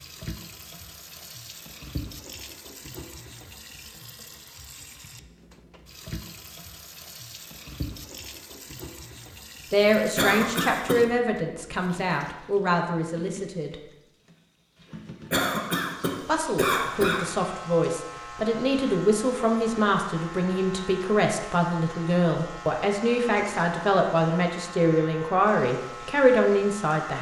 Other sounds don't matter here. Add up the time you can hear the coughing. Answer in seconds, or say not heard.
3 s.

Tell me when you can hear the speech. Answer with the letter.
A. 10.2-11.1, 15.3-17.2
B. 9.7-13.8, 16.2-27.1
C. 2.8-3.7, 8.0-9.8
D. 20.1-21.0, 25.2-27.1
B.